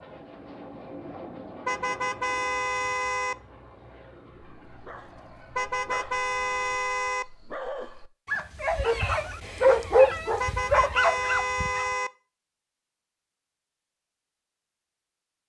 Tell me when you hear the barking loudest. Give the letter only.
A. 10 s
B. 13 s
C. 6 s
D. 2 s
A.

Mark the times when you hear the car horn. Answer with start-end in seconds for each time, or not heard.
1.6-3.4, 5.5-7.2, 10.4-12.1.